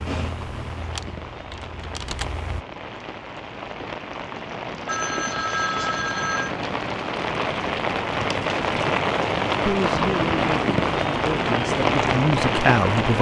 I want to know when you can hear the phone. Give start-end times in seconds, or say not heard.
4.8-6.5.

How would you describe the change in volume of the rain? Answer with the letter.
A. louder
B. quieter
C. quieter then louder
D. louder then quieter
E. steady
A.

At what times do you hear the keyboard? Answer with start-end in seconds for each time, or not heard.
0.0-2.6.